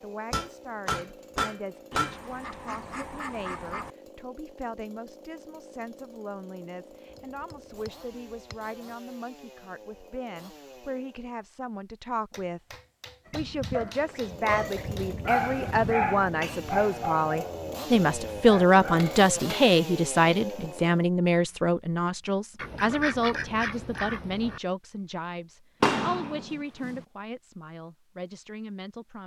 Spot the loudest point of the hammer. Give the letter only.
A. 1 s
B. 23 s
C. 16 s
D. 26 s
D.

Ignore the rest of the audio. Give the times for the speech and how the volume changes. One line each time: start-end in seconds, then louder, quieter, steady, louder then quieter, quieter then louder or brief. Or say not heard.
0.0-29.2 louder then quieter.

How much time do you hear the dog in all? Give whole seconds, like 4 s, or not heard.
6 s.